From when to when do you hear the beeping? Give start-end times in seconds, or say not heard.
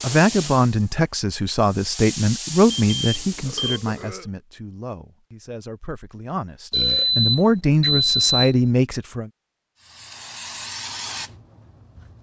2.7-3.8, 6.7-8.6.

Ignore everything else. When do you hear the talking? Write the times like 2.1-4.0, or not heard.
0.0-9.3.